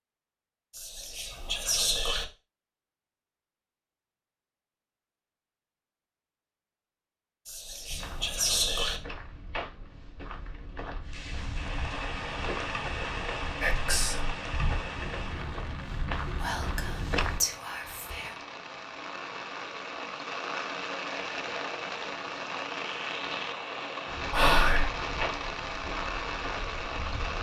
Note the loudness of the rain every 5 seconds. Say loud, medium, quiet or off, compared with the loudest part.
off, off, loud, medium, loud, loud.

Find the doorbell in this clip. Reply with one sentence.
The doorbell can't be heard in this clip.